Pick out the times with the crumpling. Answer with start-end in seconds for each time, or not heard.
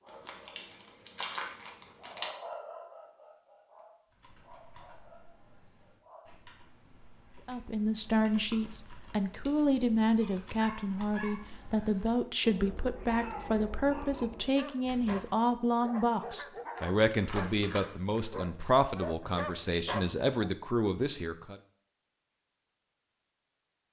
0.1-2.3, 16.1-18.2.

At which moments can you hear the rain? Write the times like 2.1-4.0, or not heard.
not heard.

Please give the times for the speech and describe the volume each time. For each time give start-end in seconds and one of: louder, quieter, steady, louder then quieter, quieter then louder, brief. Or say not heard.
7.5-21.6 steady.